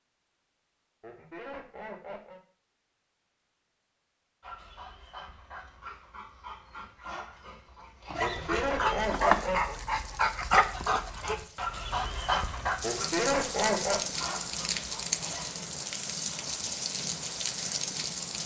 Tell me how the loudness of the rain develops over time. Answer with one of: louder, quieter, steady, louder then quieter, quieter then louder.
louder.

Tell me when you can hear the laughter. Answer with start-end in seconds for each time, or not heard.
1.0-2.4, 8.2-9.8, 12.8-14.1.